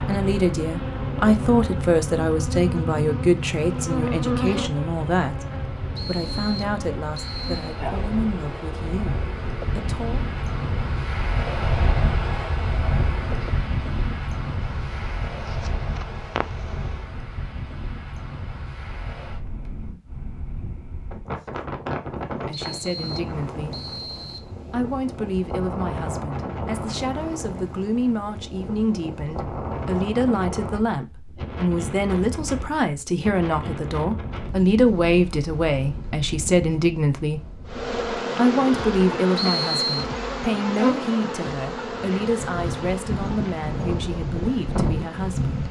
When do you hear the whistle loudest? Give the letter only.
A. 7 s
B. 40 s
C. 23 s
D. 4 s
B.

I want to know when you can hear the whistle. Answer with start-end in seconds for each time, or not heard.
6.0-7.8, 22.5-24.5, 39.4-40.0.